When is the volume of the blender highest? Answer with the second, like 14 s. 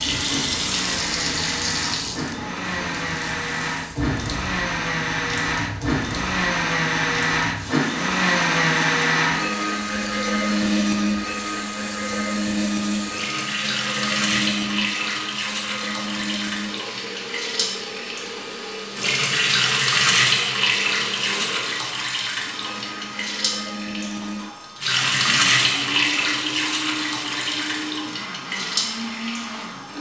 9 s.